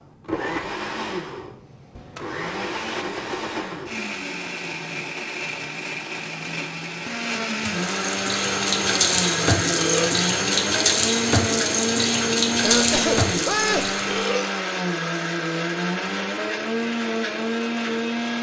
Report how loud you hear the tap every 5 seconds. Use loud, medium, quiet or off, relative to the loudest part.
off, loud, loud, off.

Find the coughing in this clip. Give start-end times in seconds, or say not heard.
12.6-14.0.